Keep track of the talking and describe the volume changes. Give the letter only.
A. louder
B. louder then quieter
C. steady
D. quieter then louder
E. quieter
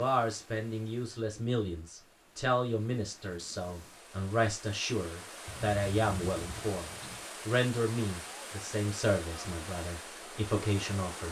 C.